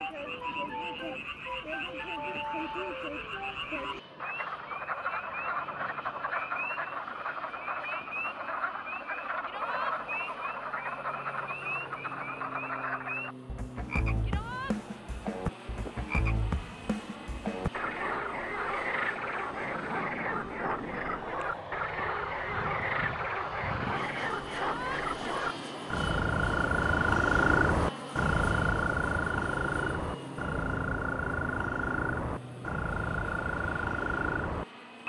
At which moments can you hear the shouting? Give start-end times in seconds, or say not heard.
9.4-9.9, 14.2-14.8, 24.6-25.1.